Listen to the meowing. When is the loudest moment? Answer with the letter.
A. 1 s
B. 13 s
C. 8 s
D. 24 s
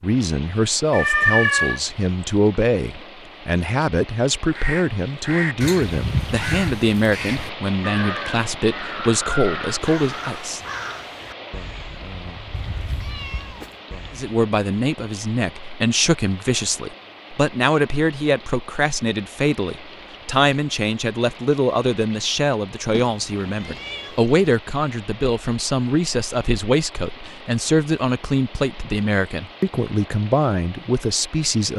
A.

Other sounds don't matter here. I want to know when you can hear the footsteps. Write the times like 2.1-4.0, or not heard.
not heard.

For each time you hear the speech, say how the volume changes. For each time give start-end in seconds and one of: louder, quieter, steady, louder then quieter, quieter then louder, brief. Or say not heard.
0.0-10.6 steady
14.1-31.7 steady.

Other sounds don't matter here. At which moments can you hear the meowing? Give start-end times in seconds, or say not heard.
0.9-1.8, 12.5-13.8, 22.9-24.4.